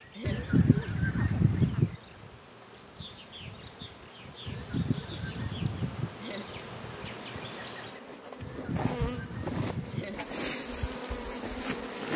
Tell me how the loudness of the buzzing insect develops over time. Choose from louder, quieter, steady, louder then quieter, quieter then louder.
louder.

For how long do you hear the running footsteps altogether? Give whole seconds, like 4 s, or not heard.
not heard.